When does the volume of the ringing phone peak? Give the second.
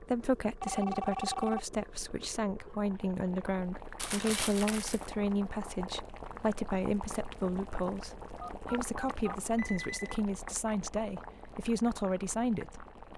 1 s.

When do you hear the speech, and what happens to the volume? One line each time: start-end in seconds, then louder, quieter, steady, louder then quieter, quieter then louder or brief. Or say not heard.
0.0-12.8 steady.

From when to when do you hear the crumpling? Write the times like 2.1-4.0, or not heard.
4.0-5.1.